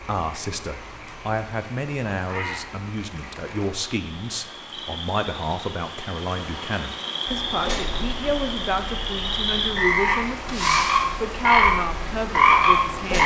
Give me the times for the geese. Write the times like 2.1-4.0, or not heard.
not heard.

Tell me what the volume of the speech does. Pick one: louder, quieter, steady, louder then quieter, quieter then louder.
steady.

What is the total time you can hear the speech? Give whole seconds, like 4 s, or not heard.
13 s.